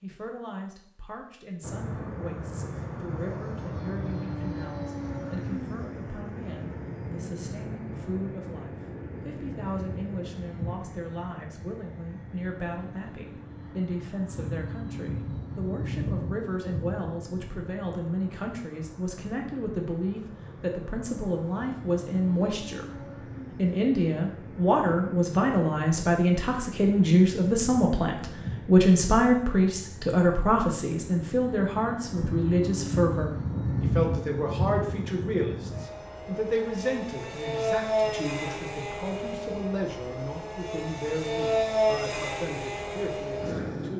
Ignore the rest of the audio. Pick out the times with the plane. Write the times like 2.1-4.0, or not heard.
1.6-43.9.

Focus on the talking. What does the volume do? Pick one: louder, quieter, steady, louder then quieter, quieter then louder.
louder then quieter.